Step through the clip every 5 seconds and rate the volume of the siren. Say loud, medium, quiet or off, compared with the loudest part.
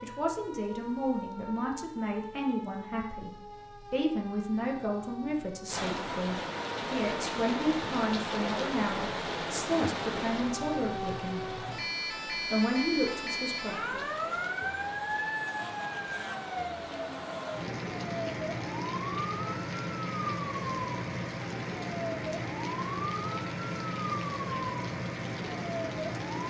medium, medium, loud, loud, loud, loud.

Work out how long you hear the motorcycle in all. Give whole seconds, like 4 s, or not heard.
not heard.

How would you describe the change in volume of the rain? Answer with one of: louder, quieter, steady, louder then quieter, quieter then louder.
quieter.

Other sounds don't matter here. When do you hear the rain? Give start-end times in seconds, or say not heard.
5.7-26.4.